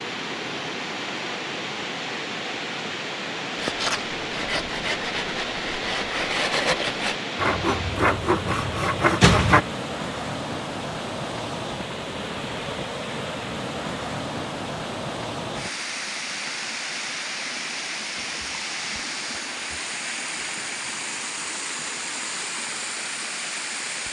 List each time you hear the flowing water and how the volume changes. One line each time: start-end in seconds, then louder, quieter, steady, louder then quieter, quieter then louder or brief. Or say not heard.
0.0-24.0 steady.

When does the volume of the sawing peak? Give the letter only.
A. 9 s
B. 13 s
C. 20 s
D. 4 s
A.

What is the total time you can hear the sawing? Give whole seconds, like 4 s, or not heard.
6 s.